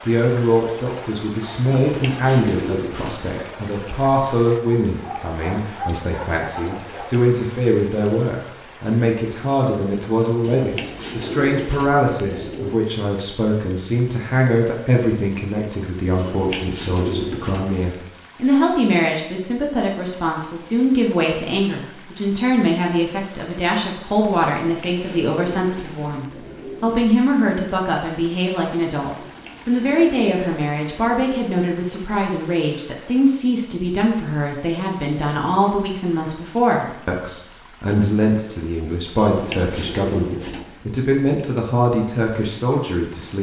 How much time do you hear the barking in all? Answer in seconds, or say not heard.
2 s.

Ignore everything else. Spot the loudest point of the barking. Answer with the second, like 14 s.
6 s.